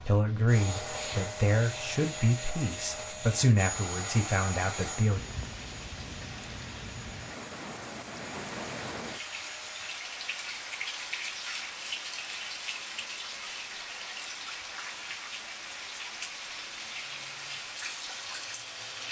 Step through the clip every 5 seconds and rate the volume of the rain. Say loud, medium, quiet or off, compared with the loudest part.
quiet, loud, loud, loud.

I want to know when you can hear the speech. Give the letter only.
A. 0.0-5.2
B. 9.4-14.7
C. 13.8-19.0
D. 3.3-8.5
A.